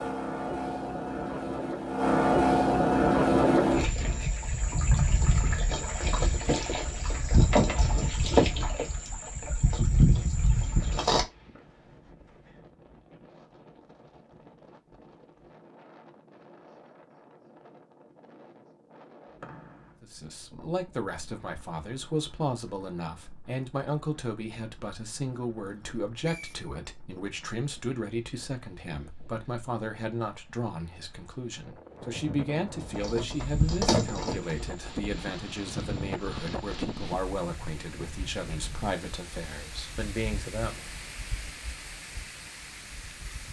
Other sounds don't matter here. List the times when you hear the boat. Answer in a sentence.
The boat can be heard from 0.0 to 11.2 s and from 32.8 to 39.0 s.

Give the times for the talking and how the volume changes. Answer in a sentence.
The talking can be heard from 20.0 to 40.9 s, at a steady volume.